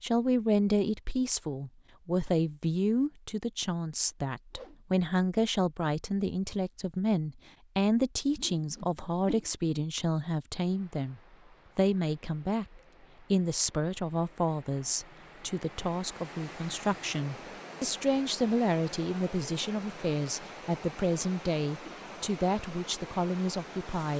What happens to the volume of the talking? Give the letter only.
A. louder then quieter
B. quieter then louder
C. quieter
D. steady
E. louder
D.